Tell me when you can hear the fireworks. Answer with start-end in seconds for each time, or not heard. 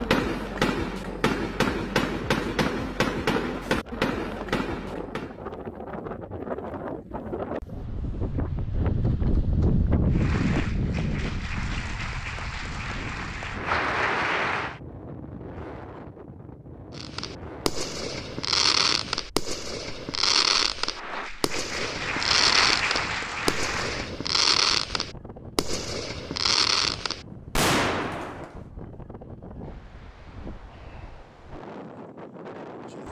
0.0-5.4, 16.9-28.6.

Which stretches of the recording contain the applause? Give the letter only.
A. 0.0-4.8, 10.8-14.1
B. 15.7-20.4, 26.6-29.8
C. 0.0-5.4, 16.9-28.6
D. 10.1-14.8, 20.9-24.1
D.